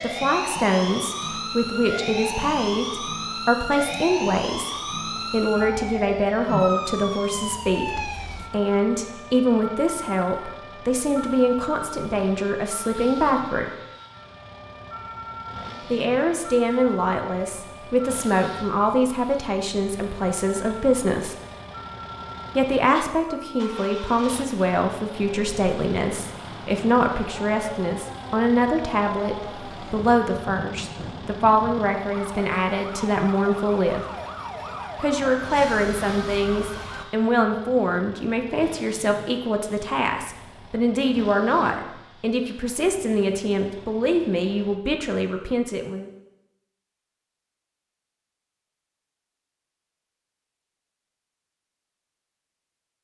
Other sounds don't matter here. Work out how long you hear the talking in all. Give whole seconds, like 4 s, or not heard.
41 s.